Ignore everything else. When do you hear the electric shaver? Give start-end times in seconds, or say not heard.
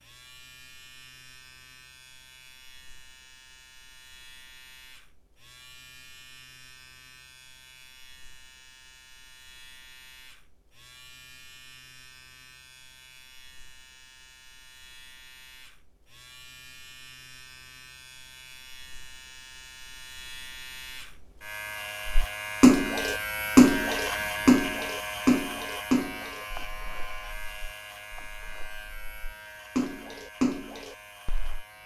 0.0-31.8.